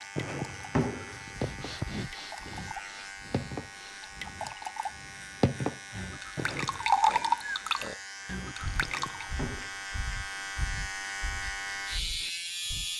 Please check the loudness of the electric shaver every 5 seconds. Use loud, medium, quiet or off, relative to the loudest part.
medium, medium, loud.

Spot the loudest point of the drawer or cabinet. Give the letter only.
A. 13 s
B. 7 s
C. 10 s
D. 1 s
D.